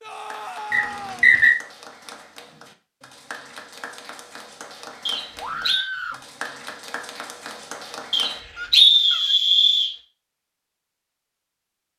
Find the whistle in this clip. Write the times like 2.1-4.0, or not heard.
0.7-1.6, 5.0-5.9, 8.1-9.9.